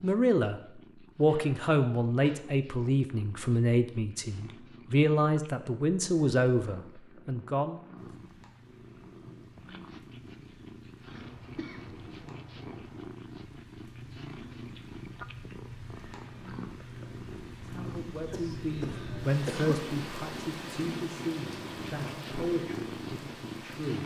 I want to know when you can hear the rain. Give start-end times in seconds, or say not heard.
8.0-24.0.